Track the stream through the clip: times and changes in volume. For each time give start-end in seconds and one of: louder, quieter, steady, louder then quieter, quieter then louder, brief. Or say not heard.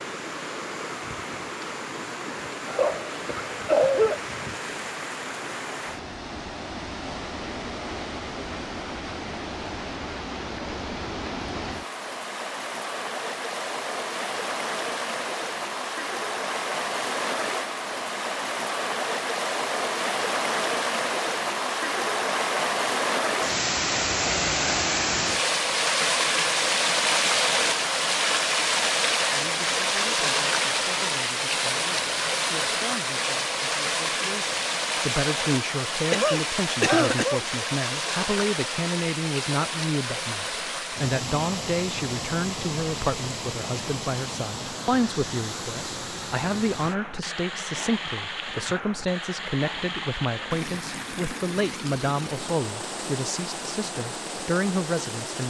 0.0-55.4 louder then quieter.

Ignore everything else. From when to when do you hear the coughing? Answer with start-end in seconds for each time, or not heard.
2.6-4.2, 36.1-37.5.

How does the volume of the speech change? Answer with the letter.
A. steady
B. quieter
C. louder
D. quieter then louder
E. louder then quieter
C.